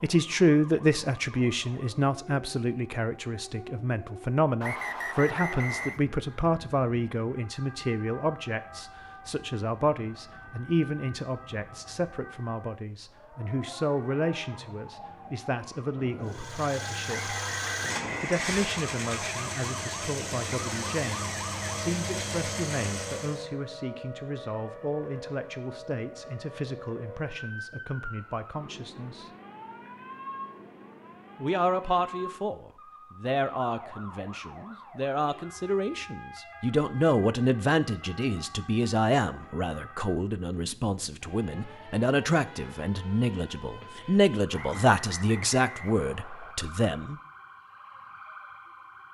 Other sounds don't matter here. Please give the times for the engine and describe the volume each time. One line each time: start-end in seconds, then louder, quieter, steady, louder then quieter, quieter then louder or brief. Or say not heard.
16.2-23.4 steady.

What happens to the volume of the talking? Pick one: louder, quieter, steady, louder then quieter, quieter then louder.
quieter then louder.